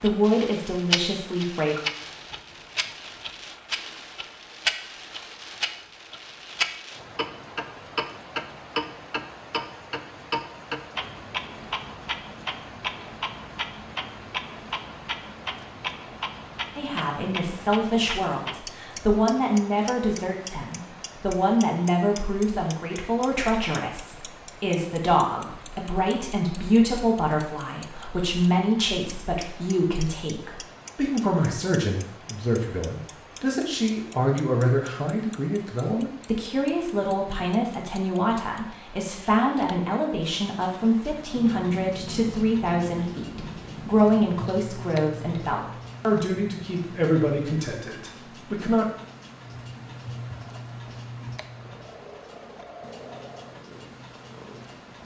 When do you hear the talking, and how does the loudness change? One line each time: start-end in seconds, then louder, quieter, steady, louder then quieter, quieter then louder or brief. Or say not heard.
0.0-1.8 brief
16.8-48.9 steady.